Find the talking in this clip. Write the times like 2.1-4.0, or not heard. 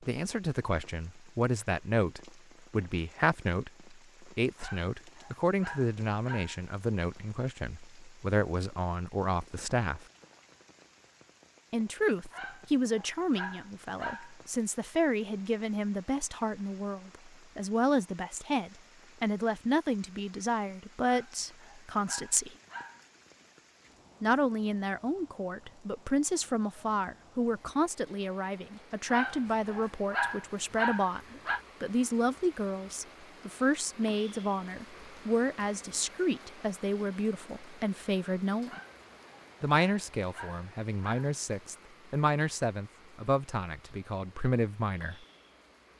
0.1-10.1, 11.7-22.5, 24.2-38.8, 39.6-45.2.